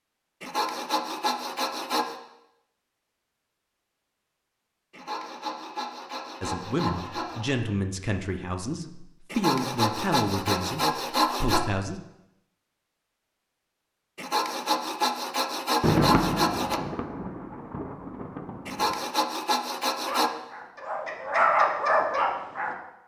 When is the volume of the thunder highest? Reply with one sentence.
The loudest moment of the thunder is at 16 seconds.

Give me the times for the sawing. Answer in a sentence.
You can hear the sawing from 0.4 to 2.1 s, from 4.9 to 7.5 s, from 9.3 to 11.7 s, from 14.2 to 16.8 s and from 18.6 to 20.3 s.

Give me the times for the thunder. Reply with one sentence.
The thunder can be heard from 15.8 to 18.9 s.